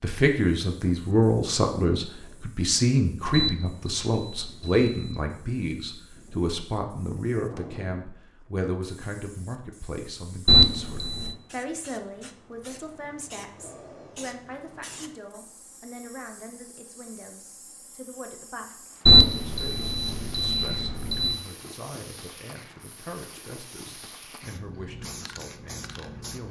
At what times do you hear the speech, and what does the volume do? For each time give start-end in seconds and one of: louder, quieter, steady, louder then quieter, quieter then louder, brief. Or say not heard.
0.0-26.4 quieter.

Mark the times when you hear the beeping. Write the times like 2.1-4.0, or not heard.
3.3-5.3, 10.4-11.3, 19.1-21.4.